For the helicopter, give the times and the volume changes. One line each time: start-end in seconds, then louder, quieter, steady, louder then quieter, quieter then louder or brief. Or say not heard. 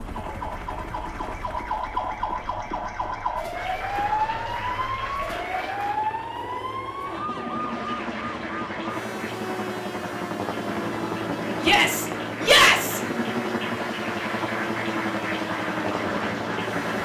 0.0-17.0 louder.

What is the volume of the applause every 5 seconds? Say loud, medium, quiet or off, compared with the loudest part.
medium, medium, loud, loud.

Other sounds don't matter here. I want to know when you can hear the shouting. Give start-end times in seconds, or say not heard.
11.6-13.0.